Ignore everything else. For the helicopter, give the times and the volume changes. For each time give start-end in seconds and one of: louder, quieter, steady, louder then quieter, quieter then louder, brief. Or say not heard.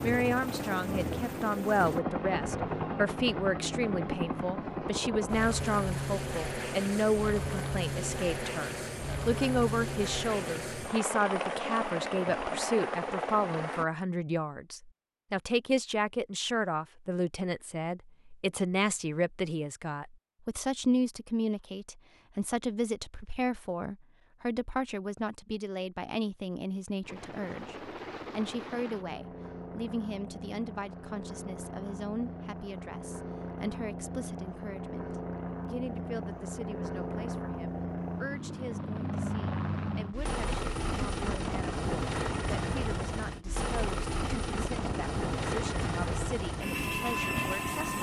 0.0-13.8 steady
27.0-47.9 louder.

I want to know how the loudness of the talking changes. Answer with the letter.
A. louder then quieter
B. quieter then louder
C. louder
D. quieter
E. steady
D.